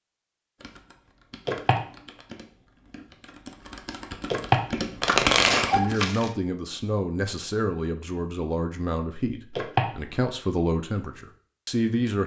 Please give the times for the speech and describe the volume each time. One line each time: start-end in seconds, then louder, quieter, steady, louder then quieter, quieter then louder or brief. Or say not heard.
5.8-12.2 steady.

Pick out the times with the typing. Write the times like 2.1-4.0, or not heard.
0.6-6.0.